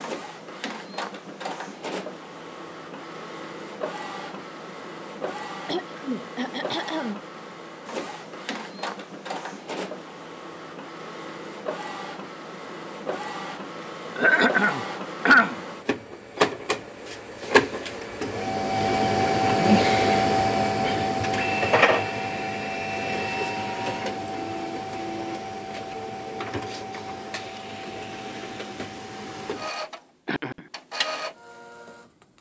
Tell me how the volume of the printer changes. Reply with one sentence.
The loudness of the printer goes up, then down.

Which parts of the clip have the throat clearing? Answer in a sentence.
You can hear the throat clearing from 5.7 to 7.2 s, from 14.2 to 15.6 s and from 30.2 to 30.7 s.